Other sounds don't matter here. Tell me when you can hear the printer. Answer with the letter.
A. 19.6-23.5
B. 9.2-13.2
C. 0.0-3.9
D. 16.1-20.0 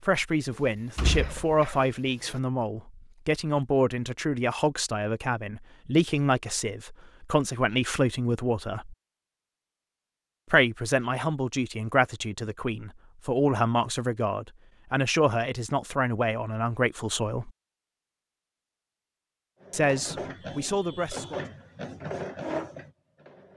A.